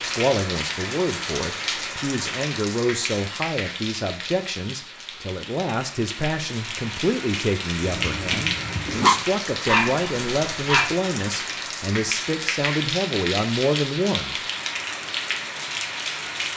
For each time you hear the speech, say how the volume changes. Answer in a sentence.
You can hear the speech from 0.0 to 14.4 s, at a steady volume.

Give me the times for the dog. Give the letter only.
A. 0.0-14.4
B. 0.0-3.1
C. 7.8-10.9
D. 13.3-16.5
C.